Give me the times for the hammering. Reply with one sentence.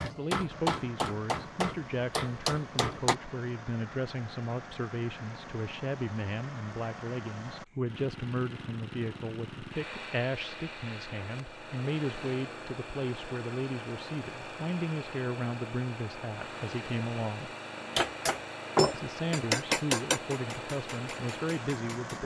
The hammering can be heard from 0.0 to 3.1 s and from 17.9 to 22.2 s.